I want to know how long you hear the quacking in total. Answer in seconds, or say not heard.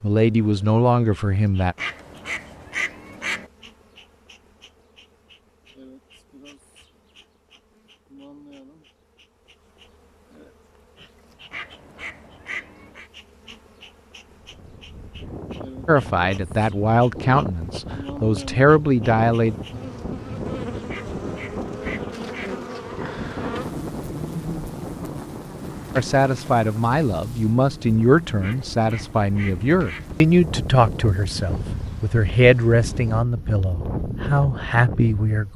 7 s.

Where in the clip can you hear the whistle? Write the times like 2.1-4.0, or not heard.
not heard.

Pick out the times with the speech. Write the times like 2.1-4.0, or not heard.
0.0-1.8, 15.8-19.6, 25.9-35.5.